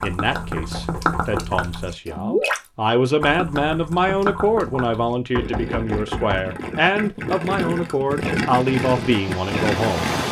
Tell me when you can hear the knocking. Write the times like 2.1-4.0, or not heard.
0.6-1.4, 5.3-6.5.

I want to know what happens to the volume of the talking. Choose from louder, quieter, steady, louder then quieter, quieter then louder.
louder.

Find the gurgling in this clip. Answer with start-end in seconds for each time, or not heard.
0.0-2.6, 3.2-10.2.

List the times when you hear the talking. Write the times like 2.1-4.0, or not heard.
0.0-10.1.